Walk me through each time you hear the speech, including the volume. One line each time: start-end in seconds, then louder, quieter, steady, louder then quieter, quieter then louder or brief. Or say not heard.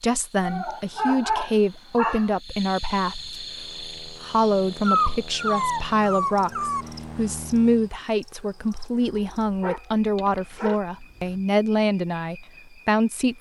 0.0-13.3 steady.